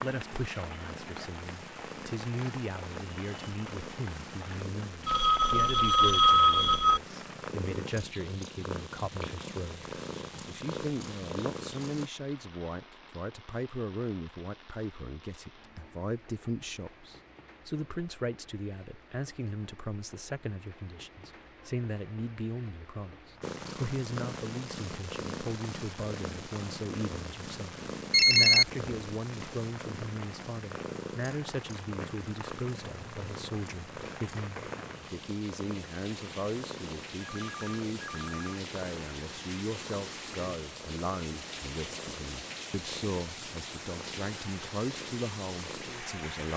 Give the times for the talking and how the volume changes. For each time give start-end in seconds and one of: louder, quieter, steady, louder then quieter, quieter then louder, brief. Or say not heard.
0.0-46.5 steady.